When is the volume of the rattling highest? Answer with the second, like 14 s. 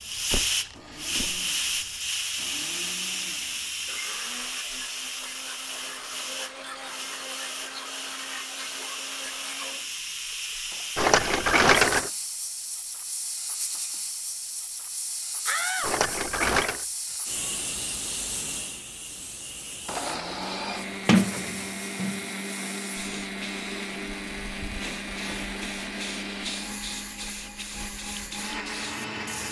12 s.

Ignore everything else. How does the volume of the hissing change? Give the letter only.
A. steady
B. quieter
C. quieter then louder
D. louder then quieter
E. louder
B.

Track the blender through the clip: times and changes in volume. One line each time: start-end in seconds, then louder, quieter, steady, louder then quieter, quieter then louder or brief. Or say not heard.
0.0-10.9 louder
19.7-29.4 steady.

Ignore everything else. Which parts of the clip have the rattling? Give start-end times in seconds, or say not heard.
10.9-12.1, 15.8-16.9.